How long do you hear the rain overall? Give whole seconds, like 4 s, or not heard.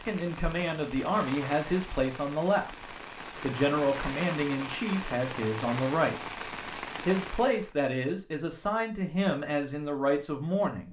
8 s.